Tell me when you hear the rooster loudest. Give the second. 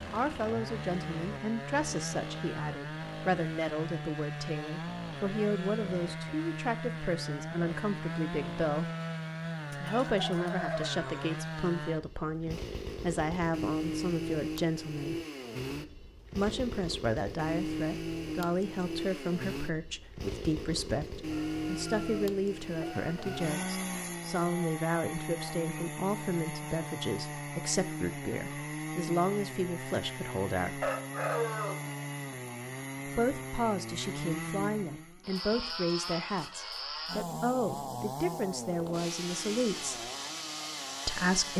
31 s.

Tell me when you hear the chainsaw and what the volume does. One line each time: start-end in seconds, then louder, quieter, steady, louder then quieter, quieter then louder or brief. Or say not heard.
0.0-41.5 steady.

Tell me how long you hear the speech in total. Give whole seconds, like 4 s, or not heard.
36 s.